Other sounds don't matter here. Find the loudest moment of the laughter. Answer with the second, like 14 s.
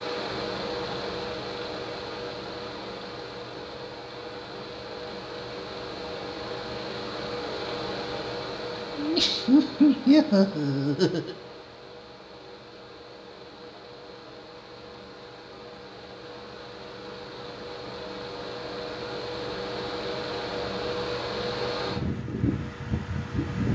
10 s.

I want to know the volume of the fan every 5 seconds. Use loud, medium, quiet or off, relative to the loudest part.
medium, medium, quiet, medium, loud.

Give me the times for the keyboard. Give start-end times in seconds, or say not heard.
not heard.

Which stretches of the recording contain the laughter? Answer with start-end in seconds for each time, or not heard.
8.9-11.3.